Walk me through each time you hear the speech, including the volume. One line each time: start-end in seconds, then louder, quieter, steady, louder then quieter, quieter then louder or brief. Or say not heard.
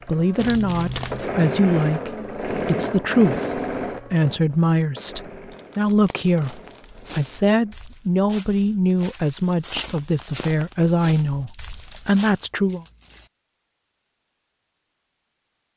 0.1-12.8 steady.